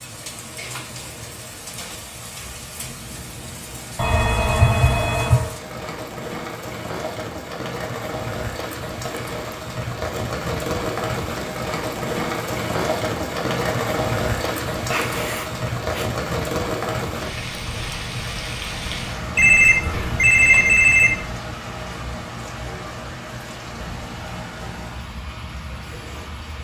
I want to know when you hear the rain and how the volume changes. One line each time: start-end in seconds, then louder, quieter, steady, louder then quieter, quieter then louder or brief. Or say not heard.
0.0-26.6 louder then quieter.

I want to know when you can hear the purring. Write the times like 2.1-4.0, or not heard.
not heard.